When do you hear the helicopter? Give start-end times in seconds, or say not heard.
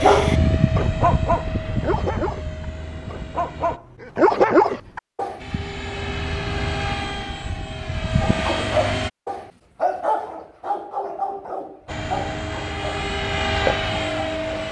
0.0-3.8, 5.4-9.1, 11.8-14.6.